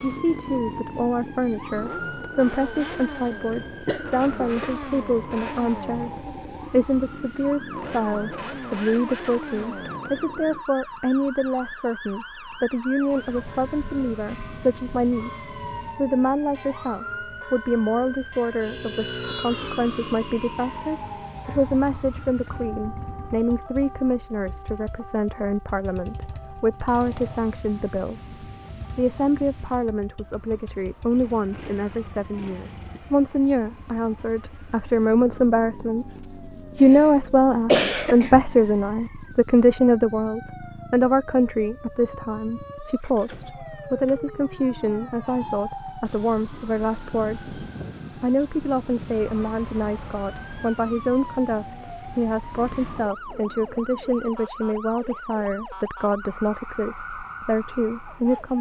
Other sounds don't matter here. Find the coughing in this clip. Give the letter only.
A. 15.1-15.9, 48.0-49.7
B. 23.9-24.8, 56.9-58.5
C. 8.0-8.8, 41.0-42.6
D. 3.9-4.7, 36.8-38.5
D.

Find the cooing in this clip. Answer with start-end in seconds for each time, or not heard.
not heard.